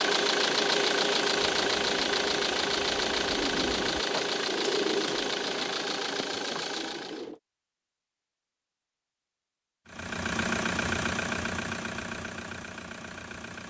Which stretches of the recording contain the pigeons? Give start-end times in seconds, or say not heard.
1.5-7.4.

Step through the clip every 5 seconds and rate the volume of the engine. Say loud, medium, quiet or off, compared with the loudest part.
loud, medium, medium.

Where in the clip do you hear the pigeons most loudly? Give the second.
5 s.